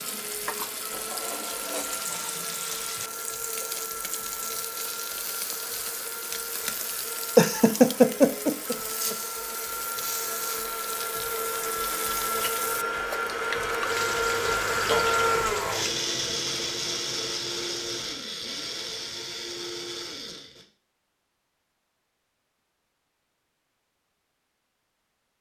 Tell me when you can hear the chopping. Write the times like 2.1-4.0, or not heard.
not heard.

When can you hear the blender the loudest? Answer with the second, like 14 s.
15 s.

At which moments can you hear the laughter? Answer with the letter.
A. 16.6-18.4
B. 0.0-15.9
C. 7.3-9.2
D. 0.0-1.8
C.